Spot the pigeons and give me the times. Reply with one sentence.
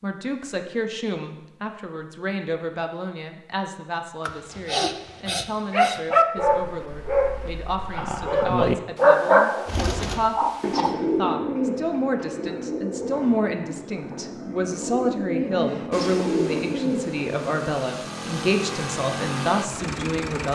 You can hear the pigeons from 9.7 to 17.6 s.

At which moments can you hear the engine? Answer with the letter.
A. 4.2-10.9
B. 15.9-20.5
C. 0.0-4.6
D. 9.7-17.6
B.